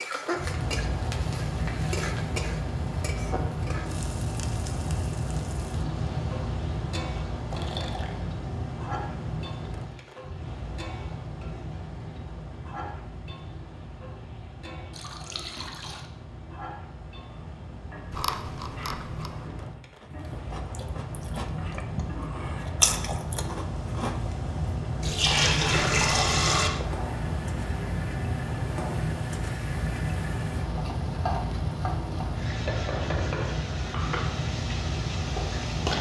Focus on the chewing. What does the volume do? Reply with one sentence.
The loudness of the chewing goes down, then up.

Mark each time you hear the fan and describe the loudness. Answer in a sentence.
You can hear the fan from 0.1 to 35.9 s, getting quieter then louder.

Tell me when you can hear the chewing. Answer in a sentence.
The chewing can be heard from 18.1 to 24.3 s.